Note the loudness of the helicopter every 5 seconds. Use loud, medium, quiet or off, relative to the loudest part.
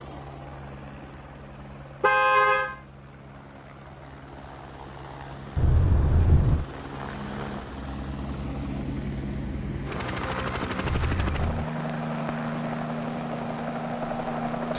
quiet, medium, loud.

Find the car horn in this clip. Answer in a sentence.
The car horn can be heard from 2.0 to 2.8 s, from 5.5 to 6.7 s and from 10.8 to 11.7 s.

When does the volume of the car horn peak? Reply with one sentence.
The loudest moment of the car horn is at 2 seconds.